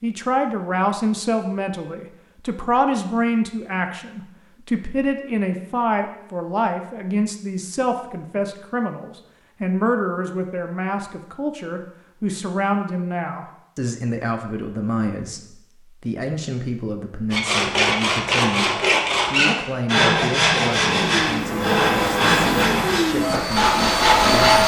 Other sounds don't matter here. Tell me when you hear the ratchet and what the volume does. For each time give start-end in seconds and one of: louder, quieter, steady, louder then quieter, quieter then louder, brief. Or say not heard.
not heard.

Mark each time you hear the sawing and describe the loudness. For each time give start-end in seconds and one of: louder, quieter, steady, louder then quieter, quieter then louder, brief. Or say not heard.
17.3-24.6 steady.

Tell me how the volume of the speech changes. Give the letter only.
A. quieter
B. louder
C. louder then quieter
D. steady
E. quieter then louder
A.